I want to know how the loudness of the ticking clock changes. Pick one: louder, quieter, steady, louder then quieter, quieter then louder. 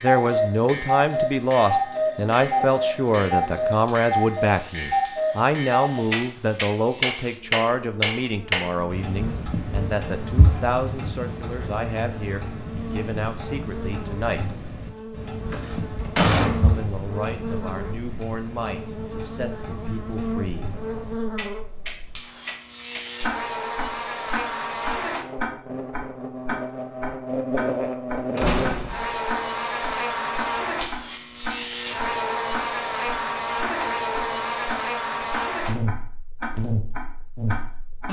quieter then louder.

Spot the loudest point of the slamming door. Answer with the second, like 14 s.
16 s.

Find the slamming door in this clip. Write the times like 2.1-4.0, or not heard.
15.5-16.9, 28.4-29.1.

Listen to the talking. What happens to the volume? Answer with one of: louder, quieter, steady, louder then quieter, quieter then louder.
quieter.